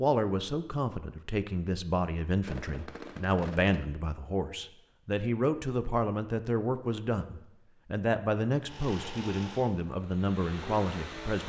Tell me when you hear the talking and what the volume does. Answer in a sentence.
The talking can be heard from 0.0 to 11.4 s, at a steady volume.